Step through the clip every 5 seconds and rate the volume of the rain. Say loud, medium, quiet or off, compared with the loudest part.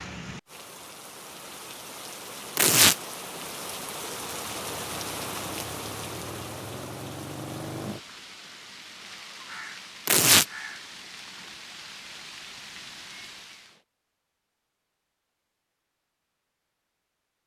loud, loud, medium, off.